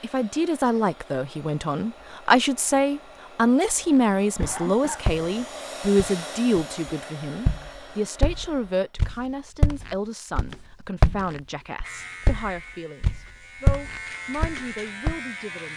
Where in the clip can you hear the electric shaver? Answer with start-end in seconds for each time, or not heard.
11.8-15.7.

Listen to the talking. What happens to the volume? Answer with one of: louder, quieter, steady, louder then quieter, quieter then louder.
quieter.